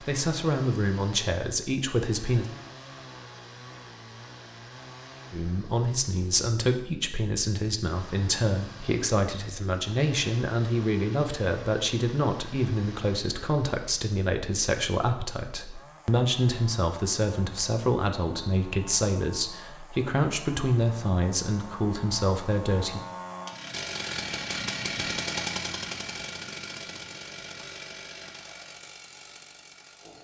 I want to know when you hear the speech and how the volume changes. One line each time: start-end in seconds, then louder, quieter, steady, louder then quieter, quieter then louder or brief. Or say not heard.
0.0-2.5 brief
5.3-23.0 steady.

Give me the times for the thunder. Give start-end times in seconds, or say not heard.
not heard.